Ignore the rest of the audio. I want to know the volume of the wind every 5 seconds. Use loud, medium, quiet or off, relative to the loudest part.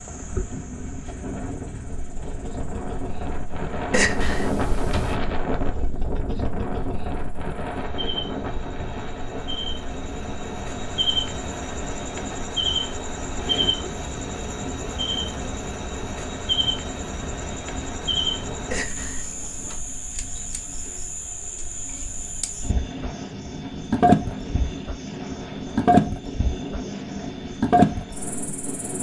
loud, loud, medium, medium, medium, loud.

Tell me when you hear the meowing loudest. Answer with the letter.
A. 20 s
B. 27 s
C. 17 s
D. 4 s
D.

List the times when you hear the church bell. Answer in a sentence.
The church bell can't be heard in this clip.